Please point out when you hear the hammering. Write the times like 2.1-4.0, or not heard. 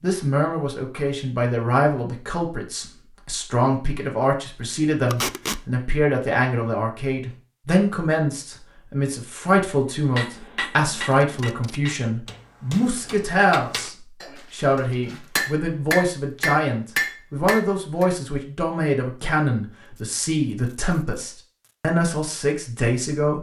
10.2-18.1.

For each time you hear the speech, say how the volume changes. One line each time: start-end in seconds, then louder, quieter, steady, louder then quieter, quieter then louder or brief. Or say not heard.
0.0-23.3 steady.